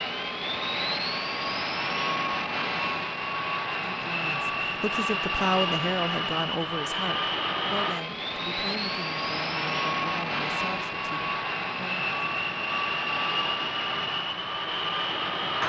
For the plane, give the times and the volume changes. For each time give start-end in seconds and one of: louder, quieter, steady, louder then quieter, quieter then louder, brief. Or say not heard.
0.0-15.6 steady.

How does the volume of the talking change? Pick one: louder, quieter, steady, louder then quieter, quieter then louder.
quieter.